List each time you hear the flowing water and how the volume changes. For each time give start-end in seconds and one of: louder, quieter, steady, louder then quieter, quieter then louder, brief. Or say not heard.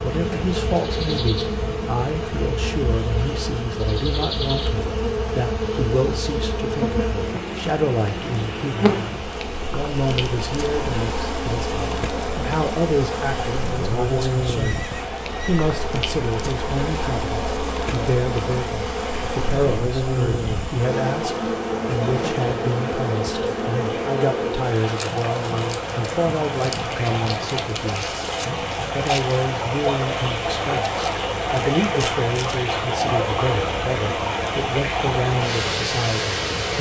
0.0-36.7 louder.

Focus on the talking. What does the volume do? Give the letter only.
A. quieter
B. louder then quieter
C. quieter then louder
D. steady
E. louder
D.